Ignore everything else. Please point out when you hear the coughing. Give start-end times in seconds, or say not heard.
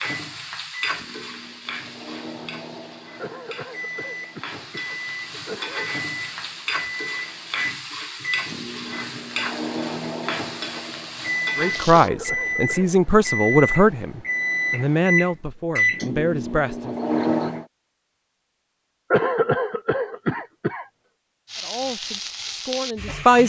3.1-5.9, 11.9-12.9, 19.1-20.9.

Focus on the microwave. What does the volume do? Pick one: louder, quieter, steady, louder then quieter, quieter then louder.
louder.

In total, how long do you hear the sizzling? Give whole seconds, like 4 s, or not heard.
14 s.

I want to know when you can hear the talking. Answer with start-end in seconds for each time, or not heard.
11.6-16.9, 21.6-23.4.